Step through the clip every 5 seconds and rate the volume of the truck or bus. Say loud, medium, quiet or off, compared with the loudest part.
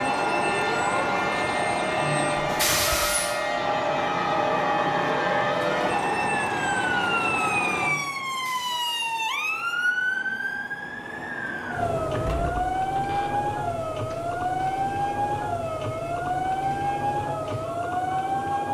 loud, loud, quiet, quiet.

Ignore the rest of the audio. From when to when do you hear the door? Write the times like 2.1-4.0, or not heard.
2.5-3.2, 11.8-13.4.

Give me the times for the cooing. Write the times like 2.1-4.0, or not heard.
not heard.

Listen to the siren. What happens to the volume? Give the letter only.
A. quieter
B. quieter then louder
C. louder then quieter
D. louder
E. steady
E.